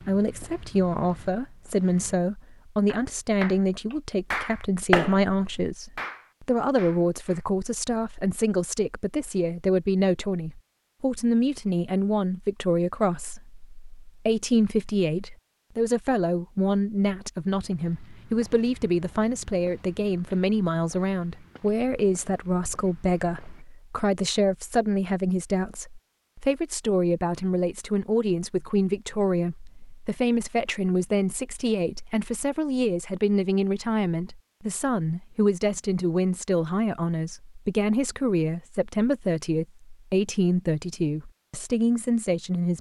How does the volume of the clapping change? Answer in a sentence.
The volume of the clapping goes up, then down.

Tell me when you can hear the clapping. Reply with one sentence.
You can hear the clapping from 2.9 to 7.5 s.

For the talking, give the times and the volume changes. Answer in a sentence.
The talking can be heard from 0.1 to 42.7 s, at a steady volume.